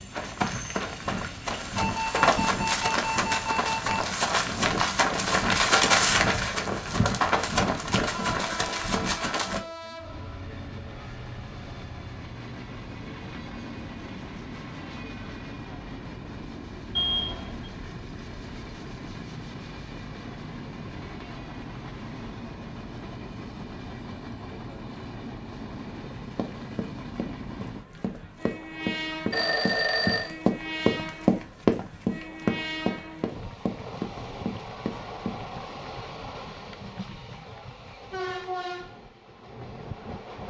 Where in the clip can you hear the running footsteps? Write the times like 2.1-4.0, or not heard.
0.1-9.6, 26.4-35.4.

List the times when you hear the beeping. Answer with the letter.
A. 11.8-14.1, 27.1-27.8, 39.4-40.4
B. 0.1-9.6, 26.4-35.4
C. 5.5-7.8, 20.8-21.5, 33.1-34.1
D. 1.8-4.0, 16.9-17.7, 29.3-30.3
D.